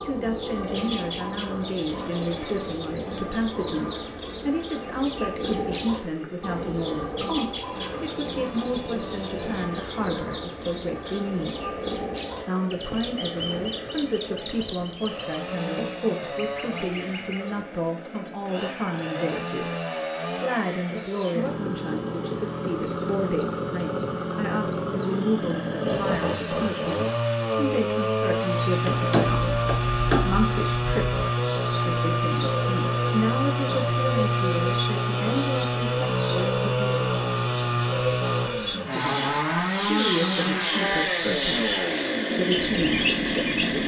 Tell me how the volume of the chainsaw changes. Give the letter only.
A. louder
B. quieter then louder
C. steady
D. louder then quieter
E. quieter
A.